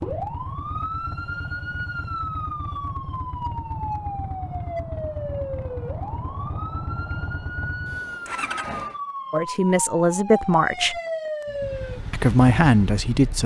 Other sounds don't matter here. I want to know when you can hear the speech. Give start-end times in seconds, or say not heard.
9.3-11.0, 12.1-13.4.